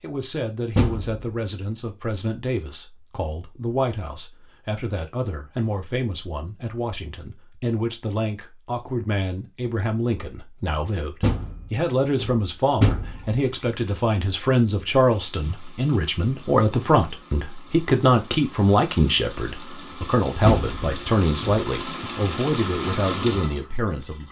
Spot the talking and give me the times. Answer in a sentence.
You can hear the talking from 0.0 to 24.2 s.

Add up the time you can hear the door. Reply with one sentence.
The door can be heard for 4 seconds in total.